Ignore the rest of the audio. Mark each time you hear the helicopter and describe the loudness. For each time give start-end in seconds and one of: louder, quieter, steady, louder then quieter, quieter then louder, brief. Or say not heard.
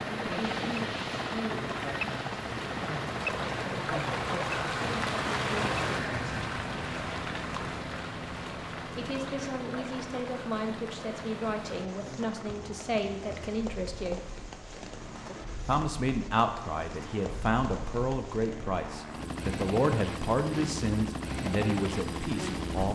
0.0-22.8 quieter then louder.